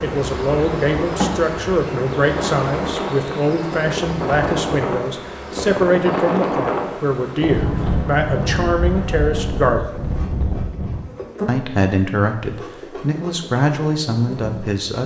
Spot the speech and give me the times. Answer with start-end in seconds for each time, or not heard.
0.0-9.9, 11.4-15.0.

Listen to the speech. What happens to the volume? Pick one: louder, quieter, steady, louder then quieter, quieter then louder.
steady.